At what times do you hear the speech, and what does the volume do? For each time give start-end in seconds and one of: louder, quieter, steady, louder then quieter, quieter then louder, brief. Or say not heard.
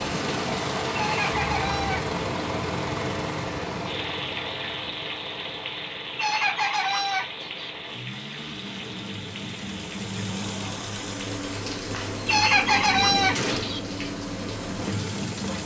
not heard.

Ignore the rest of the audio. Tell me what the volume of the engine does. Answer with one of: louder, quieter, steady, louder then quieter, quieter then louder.
quieter then louder.